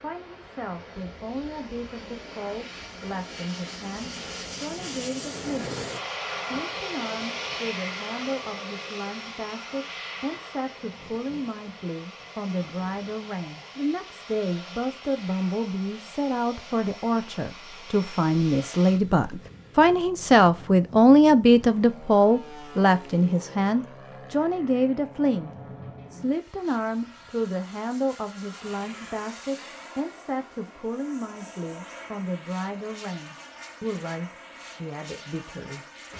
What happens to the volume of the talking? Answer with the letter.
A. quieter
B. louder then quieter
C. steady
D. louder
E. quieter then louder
B.